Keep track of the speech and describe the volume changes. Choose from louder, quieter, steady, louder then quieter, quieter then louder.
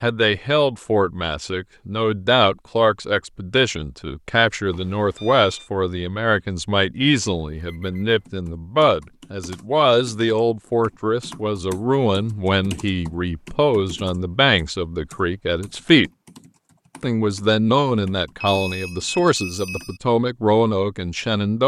steady.